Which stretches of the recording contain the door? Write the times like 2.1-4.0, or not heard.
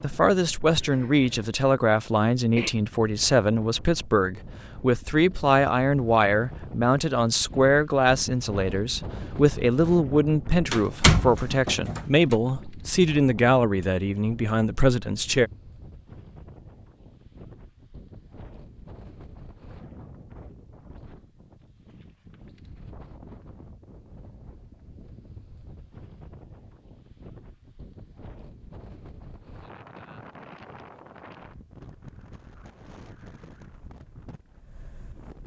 10.7-12.3.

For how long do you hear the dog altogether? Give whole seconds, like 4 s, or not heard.
not heard.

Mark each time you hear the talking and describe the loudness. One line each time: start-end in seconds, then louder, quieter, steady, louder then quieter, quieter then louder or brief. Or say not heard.
0.0-15.5 steady.